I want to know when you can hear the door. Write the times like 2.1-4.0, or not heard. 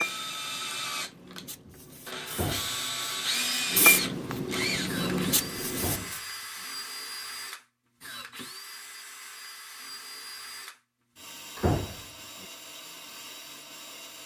2.3-3.2, 5.8-6.7, 11.6-12.4.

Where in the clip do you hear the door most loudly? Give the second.
12 s.